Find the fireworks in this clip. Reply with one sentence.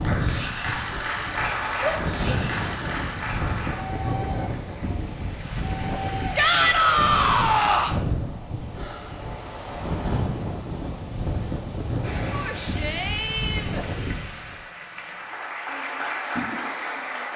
The fireworks can't be heard in this clip.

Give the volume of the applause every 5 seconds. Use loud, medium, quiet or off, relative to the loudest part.
loud, medium, medium, loud.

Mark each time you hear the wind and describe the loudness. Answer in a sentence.
You can hear the wind from 0.0 to 14.7 s, at a steady volume.